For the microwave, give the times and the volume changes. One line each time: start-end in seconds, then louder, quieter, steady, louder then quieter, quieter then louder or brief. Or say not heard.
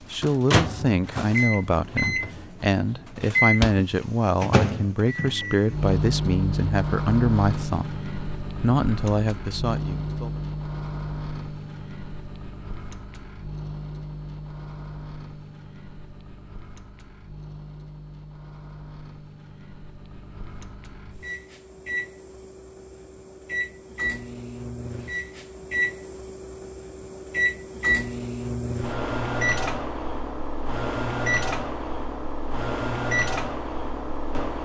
0.1-34.5 quieter then louder.